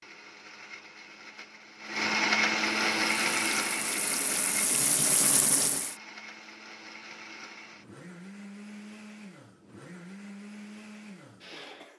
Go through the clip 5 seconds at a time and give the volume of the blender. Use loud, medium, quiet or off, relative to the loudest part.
loud, quiet, quiet.